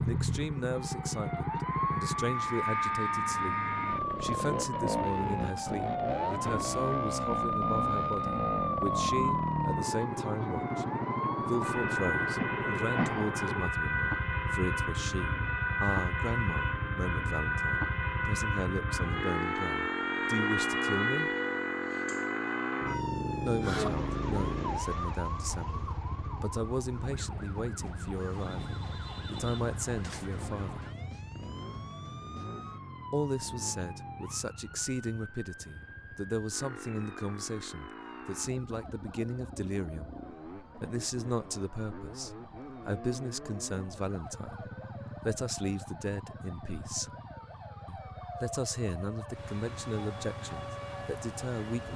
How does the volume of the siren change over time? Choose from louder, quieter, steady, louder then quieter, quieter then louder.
quieter.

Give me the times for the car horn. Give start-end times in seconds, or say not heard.
not heard.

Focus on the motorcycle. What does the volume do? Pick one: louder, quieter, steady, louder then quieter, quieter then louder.
quieter.